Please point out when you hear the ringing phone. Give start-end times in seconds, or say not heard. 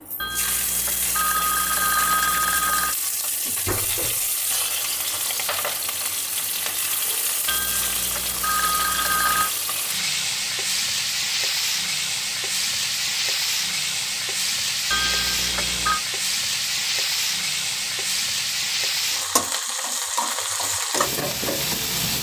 0.2-3.0, 7.5-9.5, 14.9-16.0.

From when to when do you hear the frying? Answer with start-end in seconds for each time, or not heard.
0.0-22.1.